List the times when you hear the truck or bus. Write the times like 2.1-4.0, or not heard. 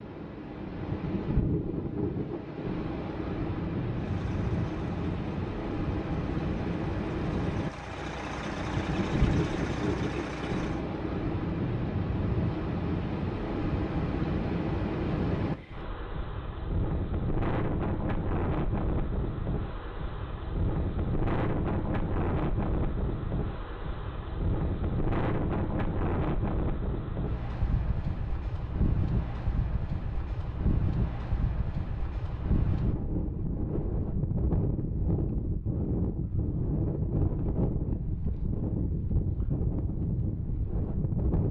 4.0-10.8.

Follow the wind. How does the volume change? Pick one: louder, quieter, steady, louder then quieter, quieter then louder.
steady.